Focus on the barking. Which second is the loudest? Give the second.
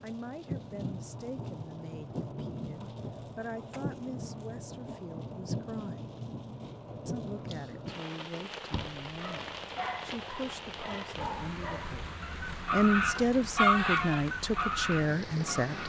14 s.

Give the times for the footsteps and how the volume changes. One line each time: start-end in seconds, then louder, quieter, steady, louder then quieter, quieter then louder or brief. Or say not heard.
not heard.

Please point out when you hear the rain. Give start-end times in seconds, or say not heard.
0.0-15.8.